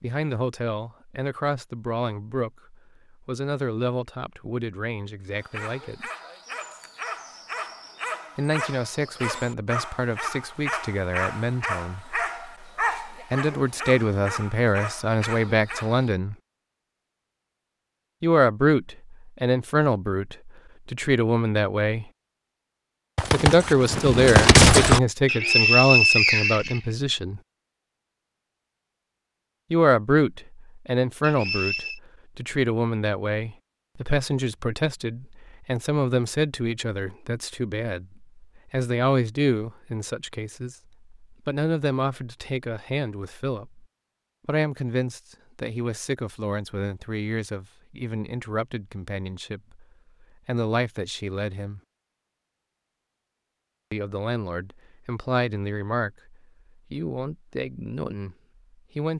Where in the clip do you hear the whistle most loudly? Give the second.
26 s.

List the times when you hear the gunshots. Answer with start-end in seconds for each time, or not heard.
23.1-25.0.